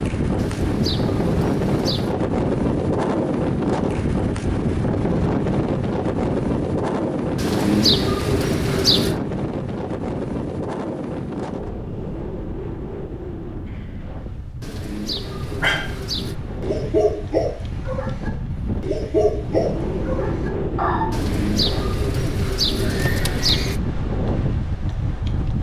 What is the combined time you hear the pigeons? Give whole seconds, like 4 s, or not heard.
8 s.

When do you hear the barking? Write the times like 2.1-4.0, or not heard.
15.6-21.1.